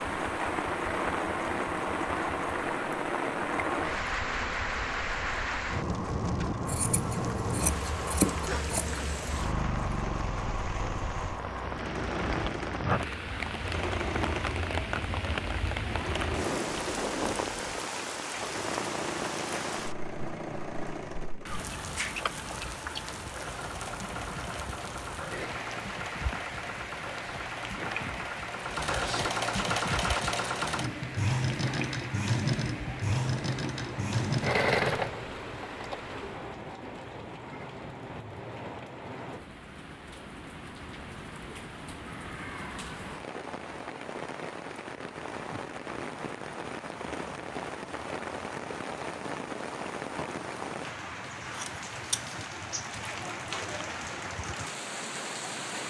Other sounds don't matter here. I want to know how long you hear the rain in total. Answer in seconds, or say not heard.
56 s.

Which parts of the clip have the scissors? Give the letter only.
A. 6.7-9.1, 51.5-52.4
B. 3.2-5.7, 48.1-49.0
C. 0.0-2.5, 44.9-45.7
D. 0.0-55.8
A.